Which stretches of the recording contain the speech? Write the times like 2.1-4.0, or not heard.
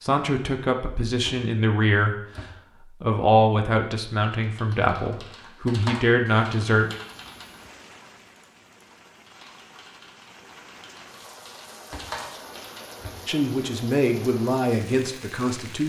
0.0-6.9, 13.2-15.8.